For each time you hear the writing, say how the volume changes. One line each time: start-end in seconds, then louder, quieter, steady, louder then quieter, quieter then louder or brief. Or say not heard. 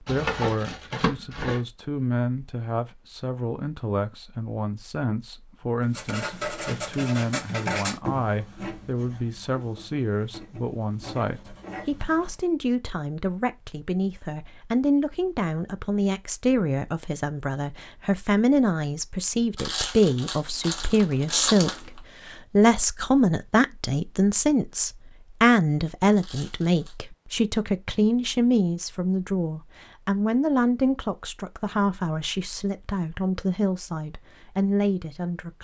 5.9-12.3 quieter then louder.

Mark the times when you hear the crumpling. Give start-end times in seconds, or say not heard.
0.1-1.6, 19.6-22.0, 26.1-26.9.